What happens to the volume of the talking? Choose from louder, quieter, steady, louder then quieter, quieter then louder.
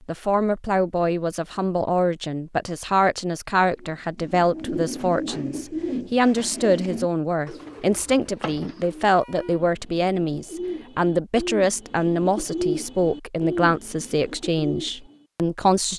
steady.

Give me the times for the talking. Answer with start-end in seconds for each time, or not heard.
0.1-15.9.